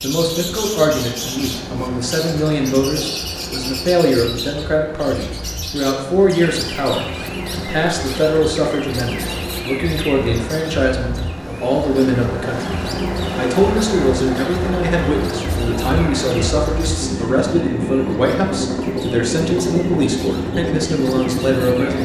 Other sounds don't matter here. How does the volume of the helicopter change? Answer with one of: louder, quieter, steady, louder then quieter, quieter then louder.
louder.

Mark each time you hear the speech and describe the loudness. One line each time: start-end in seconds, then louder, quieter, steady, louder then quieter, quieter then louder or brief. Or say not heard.
0.0-21.9 steady.